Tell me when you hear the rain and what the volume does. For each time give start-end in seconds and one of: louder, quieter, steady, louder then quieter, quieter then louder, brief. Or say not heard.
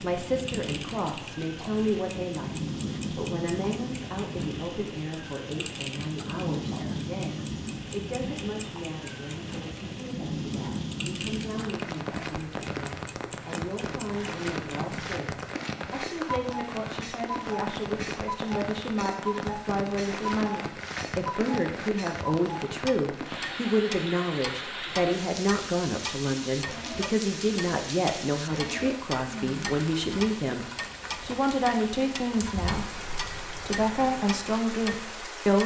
0.0-35.6 steady.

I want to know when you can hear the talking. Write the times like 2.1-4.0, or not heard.
0.0-35.6.